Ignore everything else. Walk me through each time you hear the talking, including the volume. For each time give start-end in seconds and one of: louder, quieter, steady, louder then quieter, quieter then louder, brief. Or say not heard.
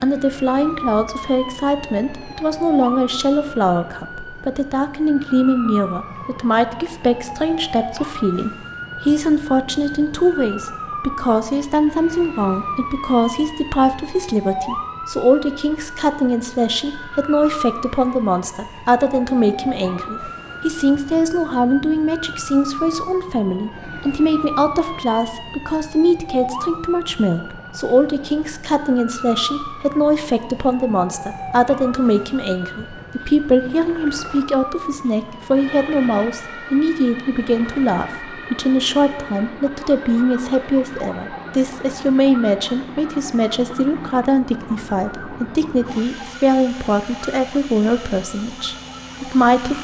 0.0-49.8 steady.